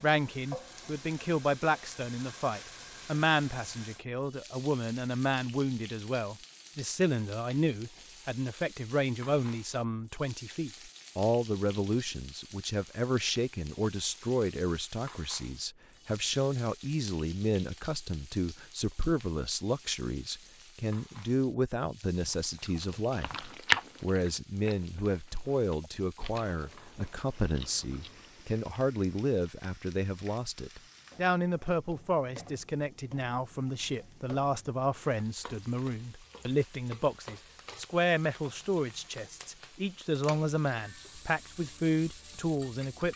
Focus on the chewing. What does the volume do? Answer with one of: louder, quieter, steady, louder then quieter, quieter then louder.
quieter then louder.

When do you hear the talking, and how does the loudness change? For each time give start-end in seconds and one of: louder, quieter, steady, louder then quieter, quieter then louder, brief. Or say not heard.
0.0-43.1 steady.